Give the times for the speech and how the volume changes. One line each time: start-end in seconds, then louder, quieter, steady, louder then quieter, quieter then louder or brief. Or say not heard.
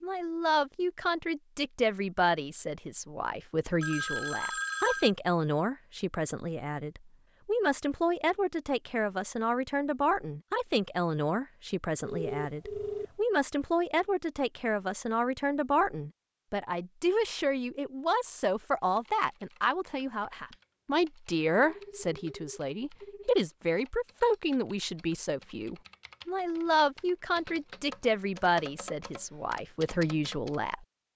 0.0-30.9 steady.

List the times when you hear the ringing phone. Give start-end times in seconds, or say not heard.
3.8-5.1, 12.1-13.2, 21.6-23.3.